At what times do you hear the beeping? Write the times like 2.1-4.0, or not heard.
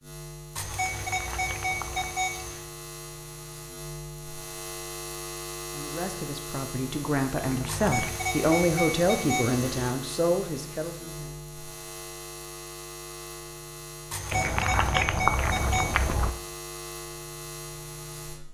0.6-2.6, 7.7-9.9, 14.1-16.1.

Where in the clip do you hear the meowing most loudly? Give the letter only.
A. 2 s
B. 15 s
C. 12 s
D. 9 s
B.